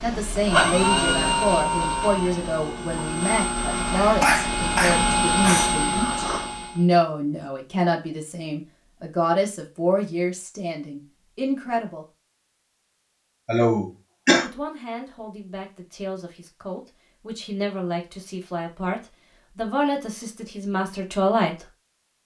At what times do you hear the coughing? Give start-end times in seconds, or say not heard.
4.0-5.8, 13.4-14.4.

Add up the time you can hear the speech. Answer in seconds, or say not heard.
19 s.